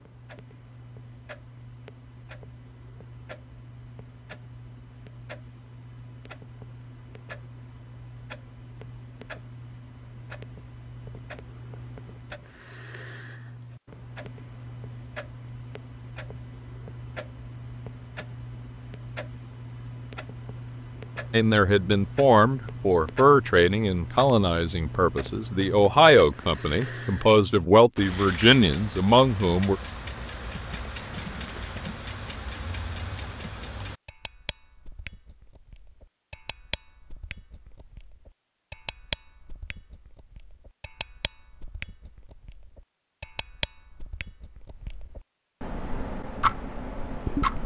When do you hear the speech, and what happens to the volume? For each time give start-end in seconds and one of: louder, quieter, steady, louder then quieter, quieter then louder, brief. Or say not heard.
21.3-29.8 steady.